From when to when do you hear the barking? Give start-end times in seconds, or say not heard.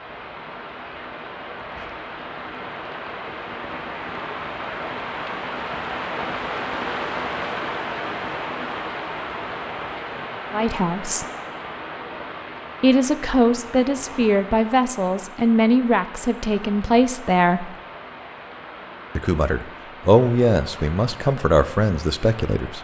not heard.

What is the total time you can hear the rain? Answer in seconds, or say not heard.
23 s.